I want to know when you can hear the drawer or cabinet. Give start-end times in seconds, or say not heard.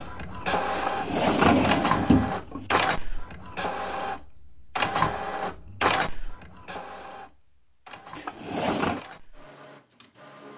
0.8-2.6, 8.2-9.1.